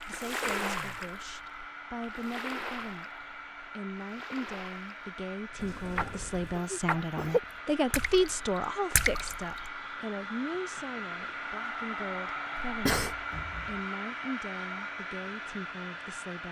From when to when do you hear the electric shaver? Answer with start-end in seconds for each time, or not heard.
not heard.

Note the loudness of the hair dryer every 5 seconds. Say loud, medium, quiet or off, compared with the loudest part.
medium, medium, loud, loud.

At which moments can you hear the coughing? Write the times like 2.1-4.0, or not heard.
0.5-1.1, 6.5-7.4, 12.7-13.2.